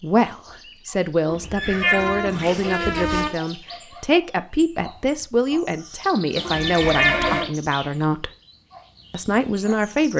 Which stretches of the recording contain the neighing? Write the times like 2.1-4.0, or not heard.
1.5-3.2, 6.3-7.5.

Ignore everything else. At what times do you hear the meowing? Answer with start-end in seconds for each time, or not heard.
1.2-3.3, 6.5-7.5.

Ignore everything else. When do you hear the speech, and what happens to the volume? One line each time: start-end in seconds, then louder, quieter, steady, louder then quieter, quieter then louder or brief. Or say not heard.
0.0-8.3 steady
9.1-10.1 brief.